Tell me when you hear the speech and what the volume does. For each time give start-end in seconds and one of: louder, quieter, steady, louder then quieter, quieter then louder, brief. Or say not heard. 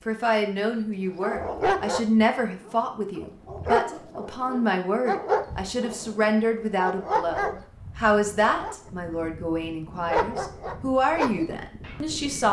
0.1-12.4 steady.